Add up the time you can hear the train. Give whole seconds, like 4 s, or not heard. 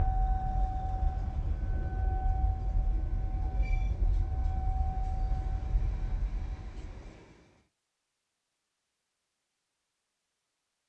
8 s.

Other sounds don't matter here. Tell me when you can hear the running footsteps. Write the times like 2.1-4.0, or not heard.
not heard.